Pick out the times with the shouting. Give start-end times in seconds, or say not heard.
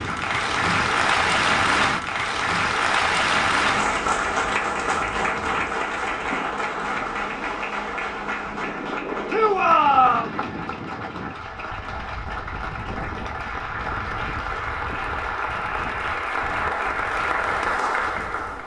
9.3-10.3.